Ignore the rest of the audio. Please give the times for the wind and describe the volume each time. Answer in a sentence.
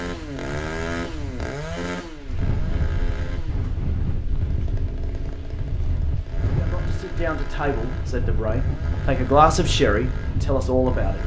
You can hear the wind from 0.0 to 11.2 s, getting louder.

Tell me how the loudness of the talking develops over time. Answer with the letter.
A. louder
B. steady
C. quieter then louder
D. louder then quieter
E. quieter
D.